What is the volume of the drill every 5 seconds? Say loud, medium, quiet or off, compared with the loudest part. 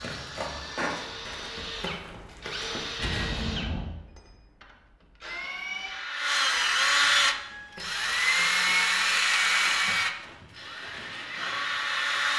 quiet, loud, medium.